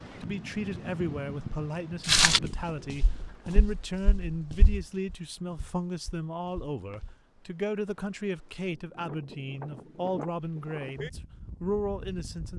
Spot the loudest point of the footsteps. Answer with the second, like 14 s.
2 s.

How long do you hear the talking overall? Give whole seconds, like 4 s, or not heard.
12 s.